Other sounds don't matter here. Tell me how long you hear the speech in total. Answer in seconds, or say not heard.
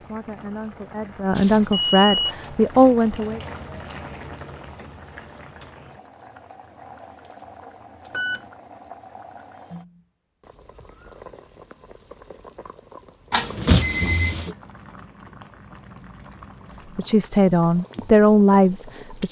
6 s.